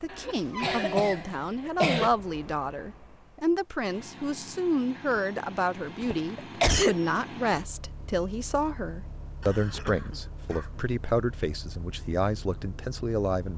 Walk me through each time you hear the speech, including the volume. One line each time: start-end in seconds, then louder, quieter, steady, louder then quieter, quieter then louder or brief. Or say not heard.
0.0-13.5 steady.